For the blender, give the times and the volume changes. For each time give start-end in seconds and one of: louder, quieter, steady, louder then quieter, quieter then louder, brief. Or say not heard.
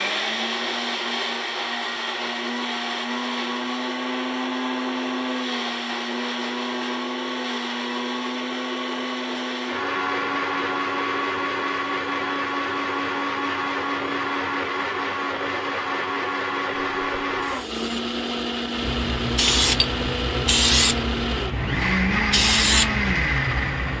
0.0-23.9 steady.